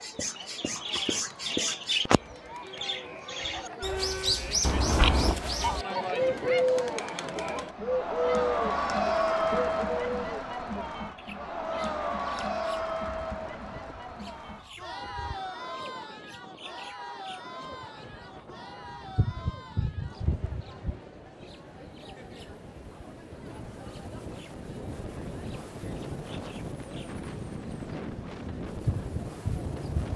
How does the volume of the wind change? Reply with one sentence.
The volume of the wind goes up.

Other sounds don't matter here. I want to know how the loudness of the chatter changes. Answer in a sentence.
The loudness of the chatter goes up, then down.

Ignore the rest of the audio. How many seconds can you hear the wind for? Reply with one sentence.
The wind can be heard for 17 seconds in total.